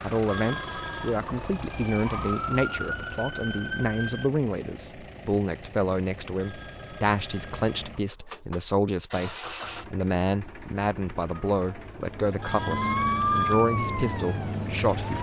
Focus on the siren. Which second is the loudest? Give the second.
13 s.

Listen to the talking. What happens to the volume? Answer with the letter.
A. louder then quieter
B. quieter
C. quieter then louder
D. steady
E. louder
D.